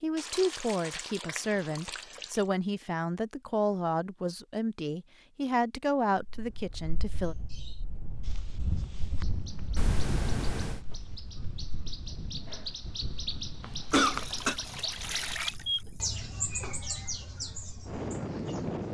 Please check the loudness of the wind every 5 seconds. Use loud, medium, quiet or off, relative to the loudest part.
off, medium, medium, loud.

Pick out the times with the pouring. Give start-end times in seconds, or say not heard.
0.1-2.4, 9.8-10.8, 13.9-16.1.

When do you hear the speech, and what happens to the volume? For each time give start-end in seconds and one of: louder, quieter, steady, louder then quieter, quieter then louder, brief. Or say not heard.
0.0-7.3 steady.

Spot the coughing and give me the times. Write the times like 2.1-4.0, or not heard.
13.6-14.6.